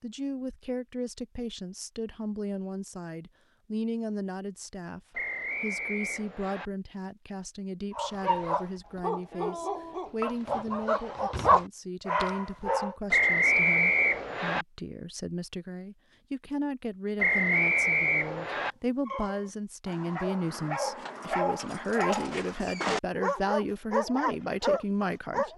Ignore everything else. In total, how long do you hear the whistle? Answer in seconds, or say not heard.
5 s.